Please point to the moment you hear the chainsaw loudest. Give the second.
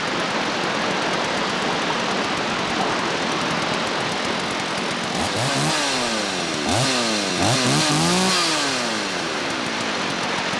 8 s.